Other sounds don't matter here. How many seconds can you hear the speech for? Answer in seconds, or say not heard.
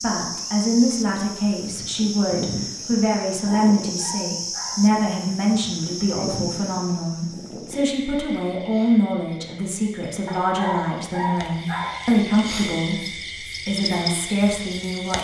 15 s.